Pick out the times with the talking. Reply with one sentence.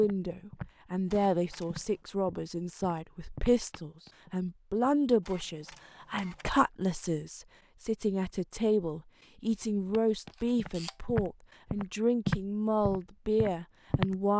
The talking can be heard from 0.0 to 14.3 s.